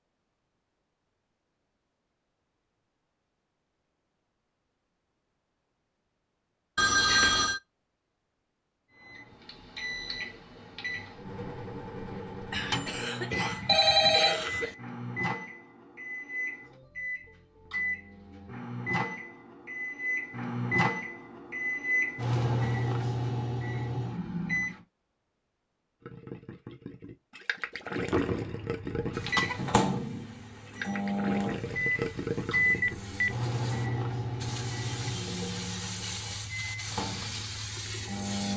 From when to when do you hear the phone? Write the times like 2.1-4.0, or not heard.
6.8-7.6, 13.7-14.7, 32.8-33.4.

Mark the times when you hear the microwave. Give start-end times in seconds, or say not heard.
8.9-24.8, 29.1-38.5.